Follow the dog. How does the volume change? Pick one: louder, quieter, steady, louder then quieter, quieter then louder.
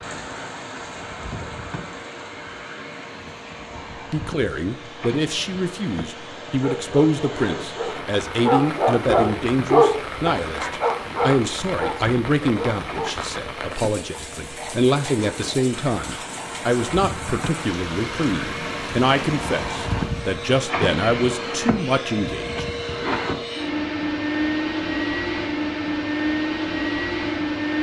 louder then quieter.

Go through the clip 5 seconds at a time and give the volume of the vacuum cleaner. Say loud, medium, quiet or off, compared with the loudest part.
quiet, quiet, quiet, medium, loud, loud.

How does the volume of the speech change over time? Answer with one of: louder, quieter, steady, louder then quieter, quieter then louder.
steady.